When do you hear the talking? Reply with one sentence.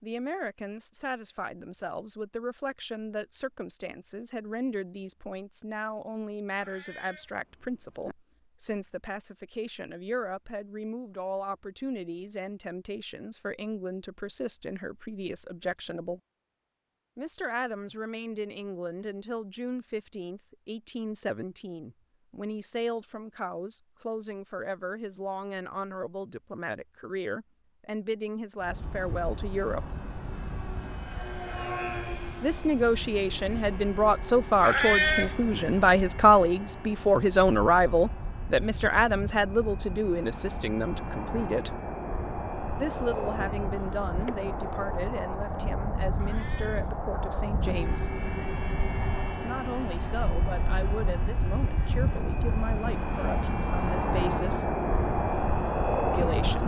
The talking can be heard from 0.0 to 16.2 s, from 17.1 to 29.9 s, from 32.4 to 41.8 s, from 42.8 to 48.2 s, from 49.4 to 54.8 s and from 56.1 to 56.6 s.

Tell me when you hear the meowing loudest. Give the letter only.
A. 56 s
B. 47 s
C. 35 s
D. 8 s
C.